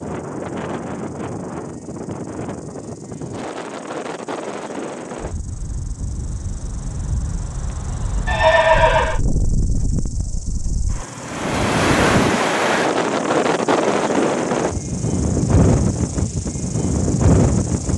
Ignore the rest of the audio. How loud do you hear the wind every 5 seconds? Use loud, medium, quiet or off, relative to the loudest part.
medium, medium, loud, loud.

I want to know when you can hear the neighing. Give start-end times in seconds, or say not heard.
8.2-9.2.